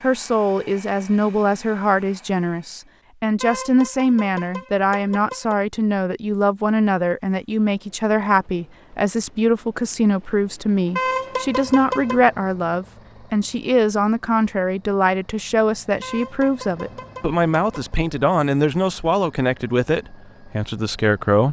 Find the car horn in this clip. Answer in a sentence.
The car horn can be heard from 3.4 to 5.5 s, from 10.9 to 12.2 s and from 16.0 to 17.9 s.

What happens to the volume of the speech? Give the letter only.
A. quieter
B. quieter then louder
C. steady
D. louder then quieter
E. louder
C.